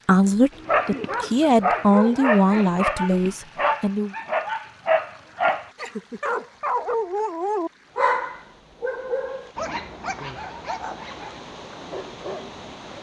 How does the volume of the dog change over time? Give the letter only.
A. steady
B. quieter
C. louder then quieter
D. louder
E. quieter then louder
B.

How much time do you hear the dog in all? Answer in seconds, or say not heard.
12 s.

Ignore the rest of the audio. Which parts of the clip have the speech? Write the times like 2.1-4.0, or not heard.
0.1-4.2.